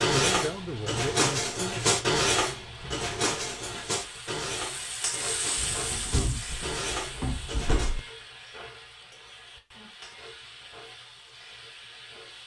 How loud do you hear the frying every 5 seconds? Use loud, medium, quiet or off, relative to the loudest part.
loud, loud, medium.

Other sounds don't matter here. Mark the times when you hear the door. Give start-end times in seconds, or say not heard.
5.5-8.0.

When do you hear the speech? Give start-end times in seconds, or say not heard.
0.1-1.9.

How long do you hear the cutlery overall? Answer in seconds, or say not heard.
8 s.